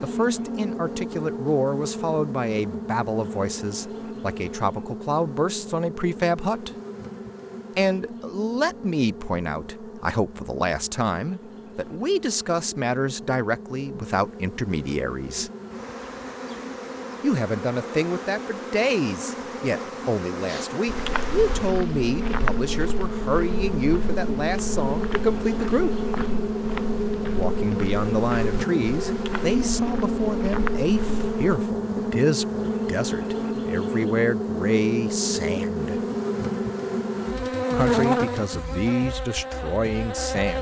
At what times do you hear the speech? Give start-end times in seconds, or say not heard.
0.0-6.7, 7.8-15.5, 17.2-25.9, 27.3-36.0, 37.7-40.5.